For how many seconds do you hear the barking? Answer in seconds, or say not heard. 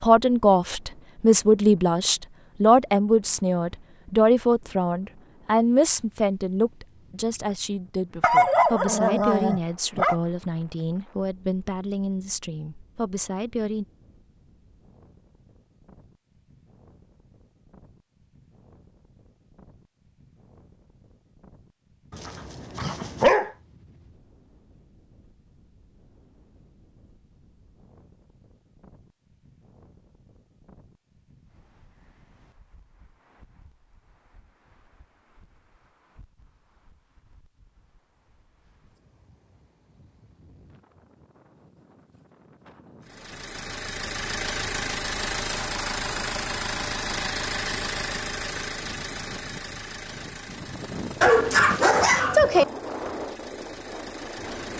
5 s.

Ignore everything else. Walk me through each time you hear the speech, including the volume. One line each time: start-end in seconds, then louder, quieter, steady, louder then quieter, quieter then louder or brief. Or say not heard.
0.0-13.8 quieter.